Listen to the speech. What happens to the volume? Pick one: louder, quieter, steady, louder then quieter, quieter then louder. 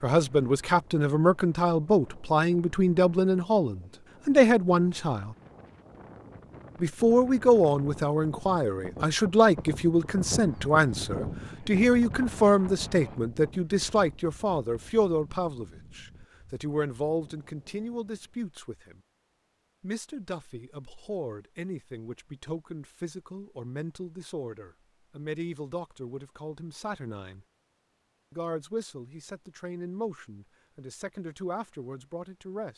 quieter.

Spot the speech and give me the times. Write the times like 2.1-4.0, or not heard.
0.0-5.3, 6.8-19.0, 19.8-27.4, 28.3-32.7.